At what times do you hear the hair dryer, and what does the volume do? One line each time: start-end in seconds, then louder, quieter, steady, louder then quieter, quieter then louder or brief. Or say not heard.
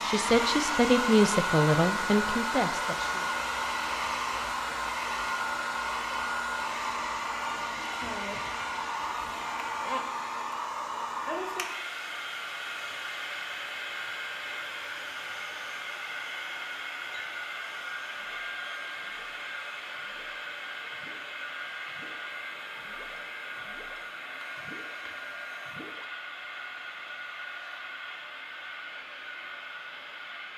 0.0-30.5 quieter.